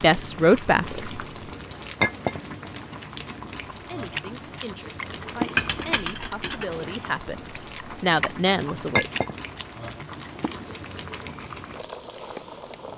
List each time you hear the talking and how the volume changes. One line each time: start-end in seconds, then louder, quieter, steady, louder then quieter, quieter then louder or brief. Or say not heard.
0.0-1.0 brief
3.8-9.1 louder.